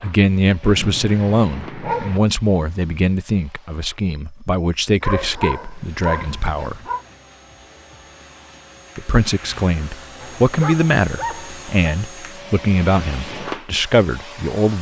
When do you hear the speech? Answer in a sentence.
The speech can be heard from 0.0 to 6.8 s and from 8.9 to 14.7 s.